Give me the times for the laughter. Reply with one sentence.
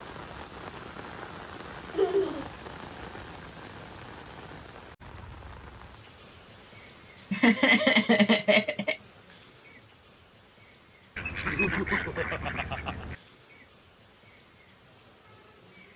The laughter can be heard from 1.9 to 2.5 s, from 7.2 to 8.9 s and from 11.4 to 13.1 s.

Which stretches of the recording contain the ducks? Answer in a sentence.
The ducks can be heard from 11.2 to 13.2 s.